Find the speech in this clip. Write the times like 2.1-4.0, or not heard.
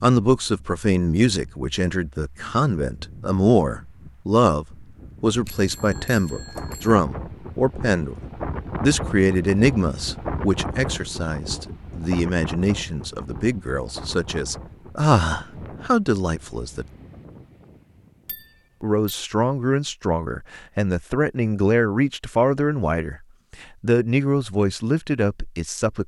0.0-8.2, 8.8-16.9, 18.8-26.0.